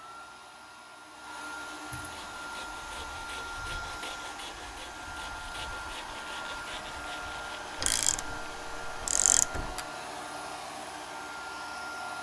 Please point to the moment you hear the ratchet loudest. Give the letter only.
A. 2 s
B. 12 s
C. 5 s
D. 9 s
D.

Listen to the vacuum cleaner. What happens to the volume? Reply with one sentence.
The loudness of the vacuum cleaner stays about the same.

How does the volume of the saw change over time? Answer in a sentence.
The volume of the saw stays about the same.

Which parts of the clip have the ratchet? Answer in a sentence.
The ratchet can be heard from 7.8 to 9.8 s.